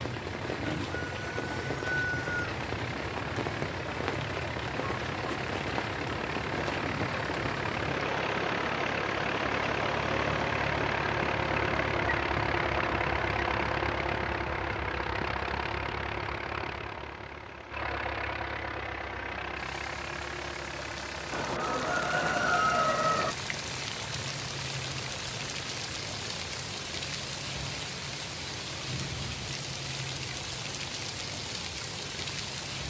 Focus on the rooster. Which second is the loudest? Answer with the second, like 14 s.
23 s.